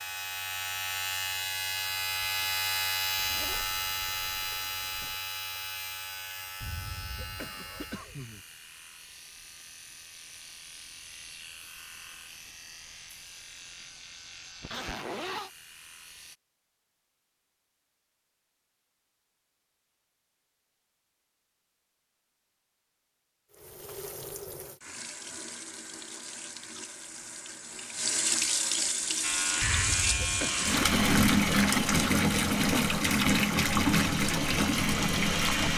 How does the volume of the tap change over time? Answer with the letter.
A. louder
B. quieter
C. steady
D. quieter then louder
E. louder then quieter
A.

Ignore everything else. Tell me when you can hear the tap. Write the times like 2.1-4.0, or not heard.
23.5-35.7.